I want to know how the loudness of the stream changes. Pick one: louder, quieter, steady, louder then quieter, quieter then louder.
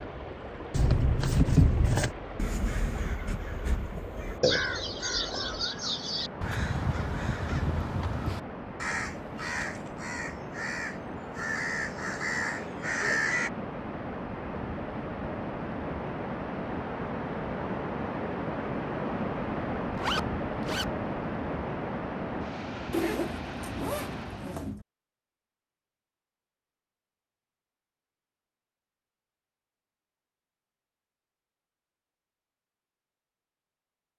louder.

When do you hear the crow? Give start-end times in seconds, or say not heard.
2.4-13.5.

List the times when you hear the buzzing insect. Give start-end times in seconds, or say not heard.
not heard.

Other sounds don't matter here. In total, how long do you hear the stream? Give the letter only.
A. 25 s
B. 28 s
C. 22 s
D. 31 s
A.